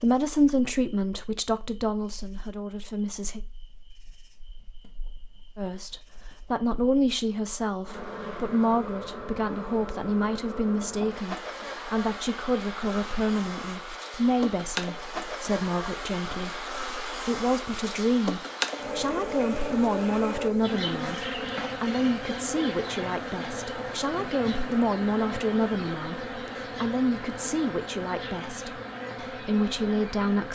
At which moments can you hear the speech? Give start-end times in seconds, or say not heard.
0.0-3.4, 5.5-30.4.